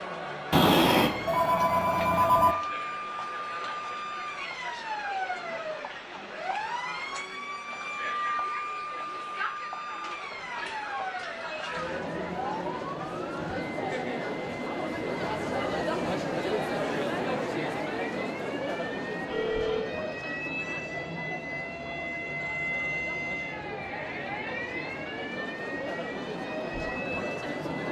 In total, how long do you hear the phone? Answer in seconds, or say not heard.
3 s.